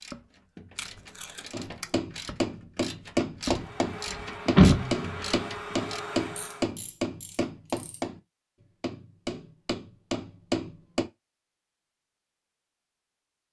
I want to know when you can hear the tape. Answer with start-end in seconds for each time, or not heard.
0.8-1.9.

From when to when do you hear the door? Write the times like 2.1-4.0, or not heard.
4.1-5.3.